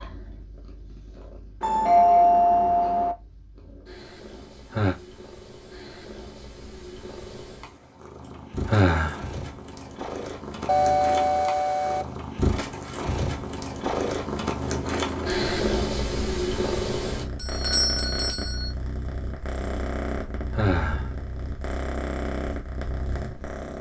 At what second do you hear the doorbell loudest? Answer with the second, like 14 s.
2 s.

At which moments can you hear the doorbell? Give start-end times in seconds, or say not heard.
1.6-3.1, 10.7-12.1, 17.4-18.7.